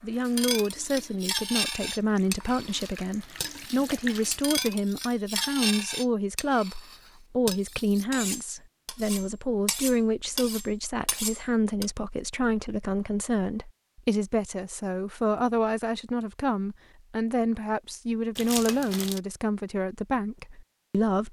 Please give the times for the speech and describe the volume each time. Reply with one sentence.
The speech can be heard from 0.0 to 21.2 s, at a steady volume.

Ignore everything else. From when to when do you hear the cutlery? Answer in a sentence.
The cutlery can be heard from 0.2 to 11.8 s.